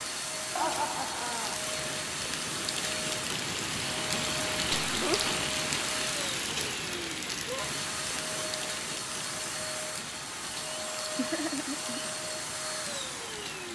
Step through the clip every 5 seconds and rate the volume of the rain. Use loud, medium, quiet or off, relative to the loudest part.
loud, loud, medium.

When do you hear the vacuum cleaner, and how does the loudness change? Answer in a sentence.
You can hear the vacuum cleaner from 0.0 to 13.7 s, at a steady volume.